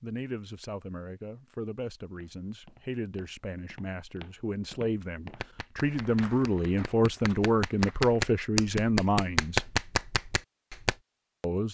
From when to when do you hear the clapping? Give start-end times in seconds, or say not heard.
5.3-10.9.